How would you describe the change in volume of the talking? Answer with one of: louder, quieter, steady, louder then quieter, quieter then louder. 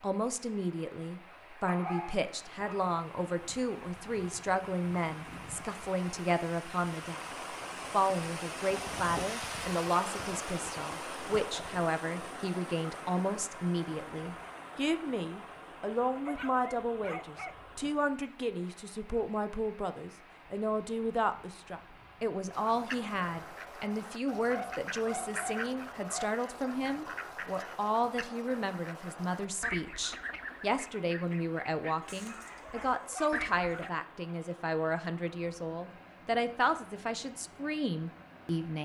steady.